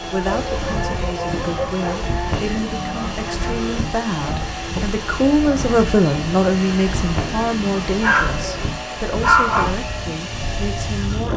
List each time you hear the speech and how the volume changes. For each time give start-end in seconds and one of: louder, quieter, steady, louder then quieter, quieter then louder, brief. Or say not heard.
0.1-11.3 louder then quieter.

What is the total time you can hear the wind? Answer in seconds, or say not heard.
11 s.